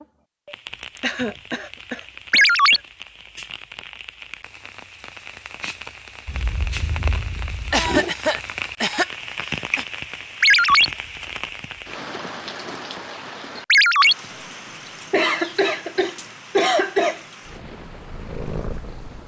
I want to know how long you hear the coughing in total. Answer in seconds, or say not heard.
6 s.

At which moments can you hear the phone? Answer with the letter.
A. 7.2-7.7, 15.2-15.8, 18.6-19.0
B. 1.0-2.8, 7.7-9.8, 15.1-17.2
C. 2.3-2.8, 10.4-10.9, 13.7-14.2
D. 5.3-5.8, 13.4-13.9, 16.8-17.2
C.